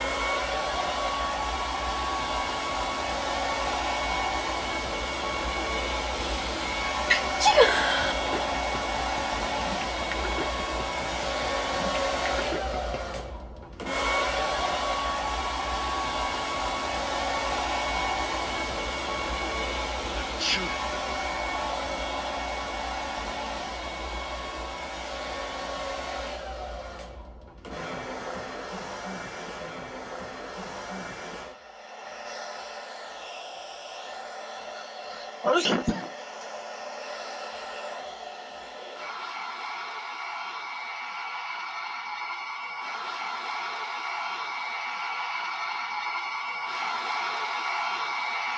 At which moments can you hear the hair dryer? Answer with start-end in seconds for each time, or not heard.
0.0-48.5.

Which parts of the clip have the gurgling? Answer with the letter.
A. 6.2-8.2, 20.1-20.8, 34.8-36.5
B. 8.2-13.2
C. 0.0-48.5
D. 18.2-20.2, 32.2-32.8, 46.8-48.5
B.